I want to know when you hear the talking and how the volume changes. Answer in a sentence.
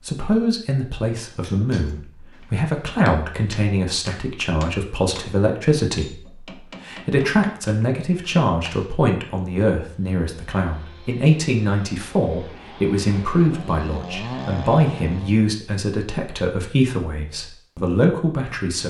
The talking can be heard from 0.1 to 18.8 s, at a steady volume.